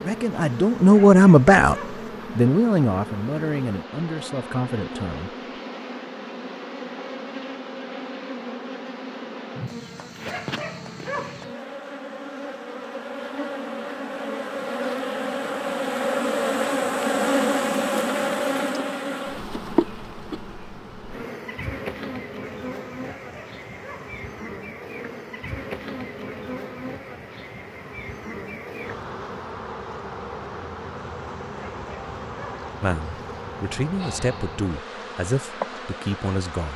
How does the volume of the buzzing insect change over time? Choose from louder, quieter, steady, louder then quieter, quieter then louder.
louder then quieter.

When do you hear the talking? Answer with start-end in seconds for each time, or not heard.
0.0-1.8, 2.4-5.3, 32.8-36.7.